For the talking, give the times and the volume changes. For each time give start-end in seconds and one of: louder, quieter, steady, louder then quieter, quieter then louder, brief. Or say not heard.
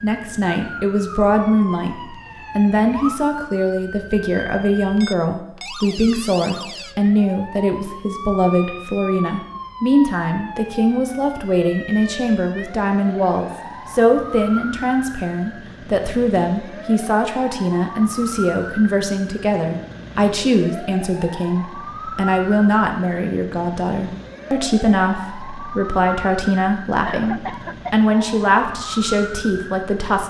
0.0-30.2 steady.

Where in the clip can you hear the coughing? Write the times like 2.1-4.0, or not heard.
27.1-28.1.